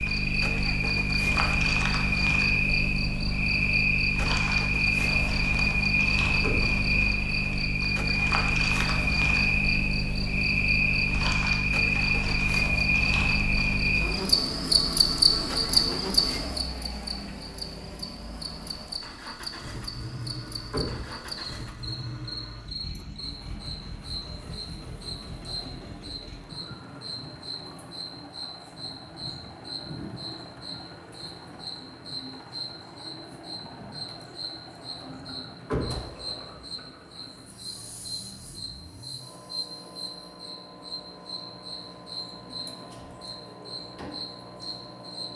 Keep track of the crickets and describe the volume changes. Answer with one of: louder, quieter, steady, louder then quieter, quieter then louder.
quieter.